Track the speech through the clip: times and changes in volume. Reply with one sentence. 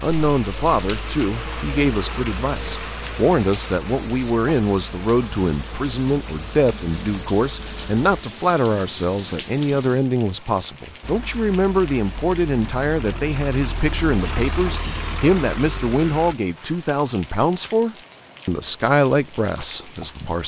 The speech can be heard from 0.0 to 20.4 s, at a steady volume.